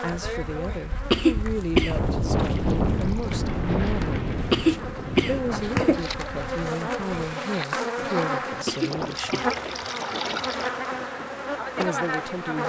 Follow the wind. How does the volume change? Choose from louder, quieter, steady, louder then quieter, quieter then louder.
quieter.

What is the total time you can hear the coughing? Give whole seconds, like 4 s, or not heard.
3 s.